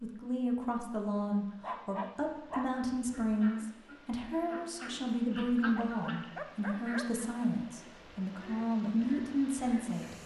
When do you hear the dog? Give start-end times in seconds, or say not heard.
1.6-3.1, 5.8-7.2.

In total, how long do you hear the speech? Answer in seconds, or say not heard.
10 s.